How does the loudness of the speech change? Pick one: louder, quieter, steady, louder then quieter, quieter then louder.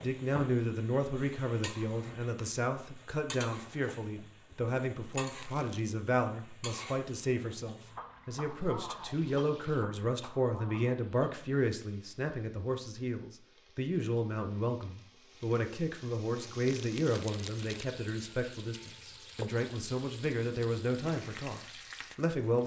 steady.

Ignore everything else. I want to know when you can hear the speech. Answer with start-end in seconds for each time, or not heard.
0.0-22.6.